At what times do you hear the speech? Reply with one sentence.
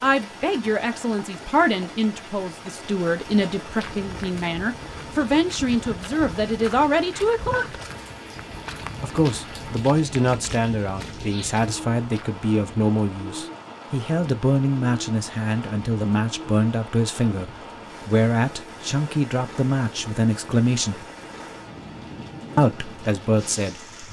The speech can be heard from 0.0 to 7.8 s, from 9.0 to 21.1 s and from 22.6 to 24.0 s.